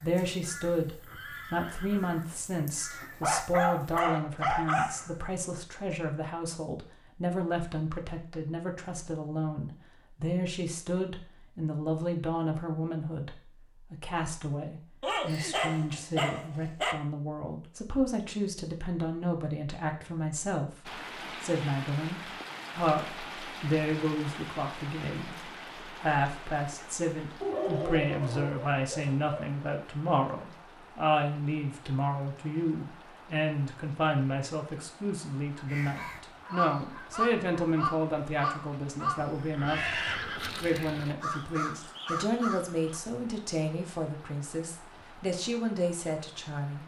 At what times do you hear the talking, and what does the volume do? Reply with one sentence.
You can hear the talking from 0.0 to 46.8 s, at a steady volume.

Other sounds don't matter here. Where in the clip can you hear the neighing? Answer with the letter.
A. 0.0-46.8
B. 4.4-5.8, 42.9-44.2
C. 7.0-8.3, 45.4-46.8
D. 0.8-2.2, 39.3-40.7
D.